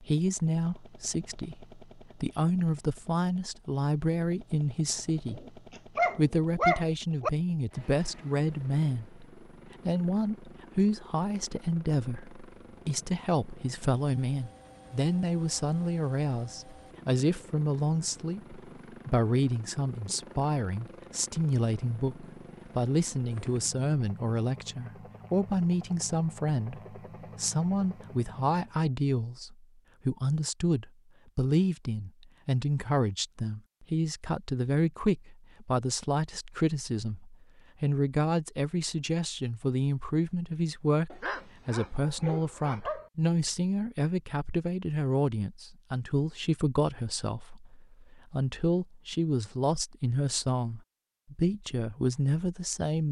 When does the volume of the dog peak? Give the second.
7 s.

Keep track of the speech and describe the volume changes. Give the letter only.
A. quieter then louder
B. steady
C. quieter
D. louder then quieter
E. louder
B.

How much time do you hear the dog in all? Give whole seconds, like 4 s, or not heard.
4 s.